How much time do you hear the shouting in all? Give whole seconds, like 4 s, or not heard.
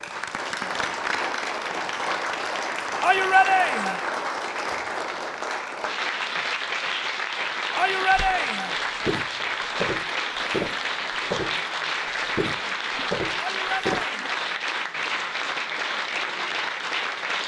3 s.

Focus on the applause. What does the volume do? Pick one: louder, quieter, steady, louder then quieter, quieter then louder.
steady.